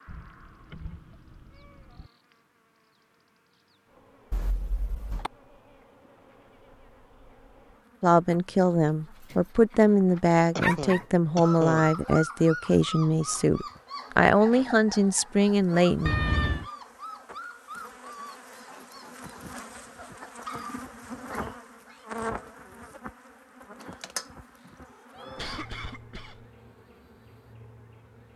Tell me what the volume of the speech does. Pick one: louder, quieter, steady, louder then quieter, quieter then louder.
steady.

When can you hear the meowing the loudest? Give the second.
16 s.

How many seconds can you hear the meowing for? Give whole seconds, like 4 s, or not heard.
4 s.